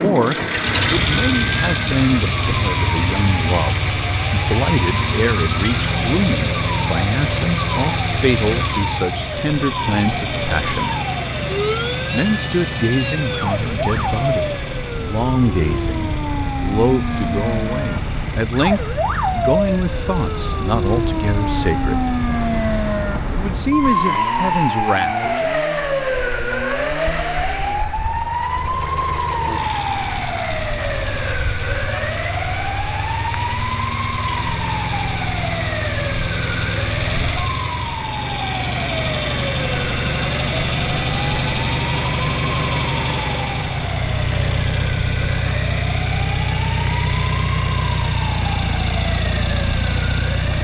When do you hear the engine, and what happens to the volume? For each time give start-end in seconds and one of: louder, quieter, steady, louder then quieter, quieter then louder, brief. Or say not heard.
0.0-50.6 quieter then louder.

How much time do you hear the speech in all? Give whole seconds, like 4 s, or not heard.
23 s.